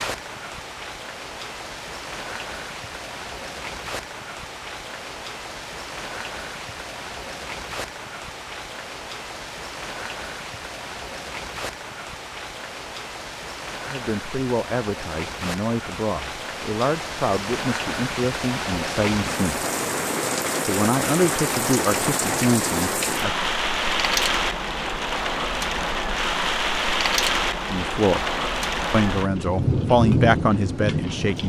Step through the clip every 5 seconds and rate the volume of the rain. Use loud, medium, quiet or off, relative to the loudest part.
medium, medium, medium, medium, loud, loud, loud.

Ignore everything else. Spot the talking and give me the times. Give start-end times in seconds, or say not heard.
13.8-19.6, 20.6-23.3, 27.7-28.2, 28.9-31.4.